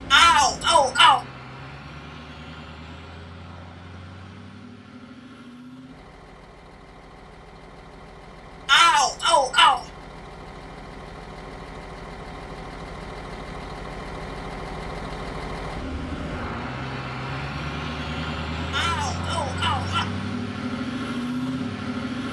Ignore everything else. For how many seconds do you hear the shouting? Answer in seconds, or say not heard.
4 s.